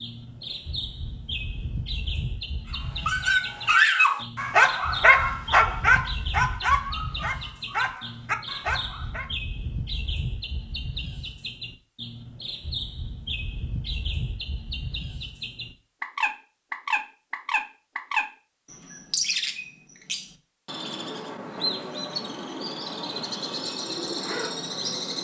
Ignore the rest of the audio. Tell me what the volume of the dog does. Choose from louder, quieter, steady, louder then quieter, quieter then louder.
quieter.